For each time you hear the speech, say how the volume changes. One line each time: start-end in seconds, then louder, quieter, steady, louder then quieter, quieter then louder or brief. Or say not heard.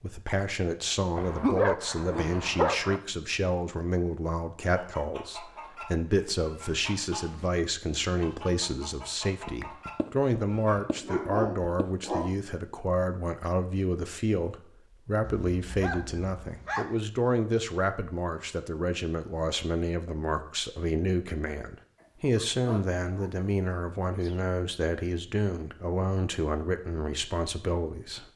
0.0-28.3 steady.